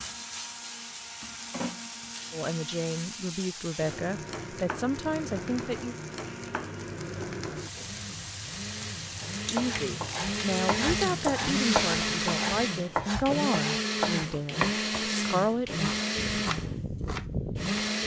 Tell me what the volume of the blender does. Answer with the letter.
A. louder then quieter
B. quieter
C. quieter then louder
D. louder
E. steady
D.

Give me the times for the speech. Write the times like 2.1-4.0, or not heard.
2.3-6.0, 9.4-15.9.